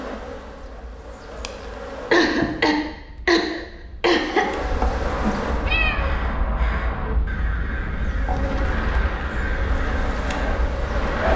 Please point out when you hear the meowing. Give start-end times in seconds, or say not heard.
5.7-6.2.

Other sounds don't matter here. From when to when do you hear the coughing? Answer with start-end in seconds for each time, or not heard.
2.1-4.5.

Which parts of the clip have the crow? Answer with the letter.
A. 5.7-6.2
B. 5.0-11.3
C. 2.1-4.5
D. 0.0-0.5
B.